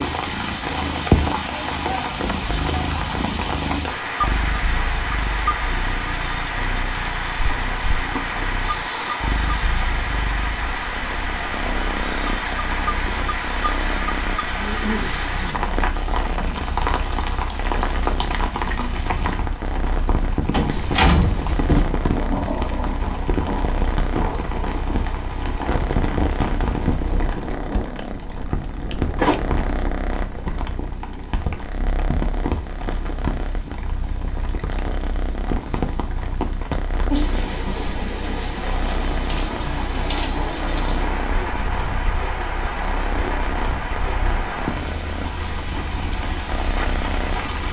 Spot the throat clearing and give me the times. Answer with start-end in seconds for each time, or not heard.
14.5-15.7.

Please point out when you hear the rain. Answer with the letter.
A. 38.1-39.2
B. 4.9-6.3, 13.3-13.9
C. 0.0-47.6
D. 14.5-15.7
C.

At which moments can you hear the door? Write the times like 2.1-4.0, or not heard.
20.5-21.9, 28.9-29.6.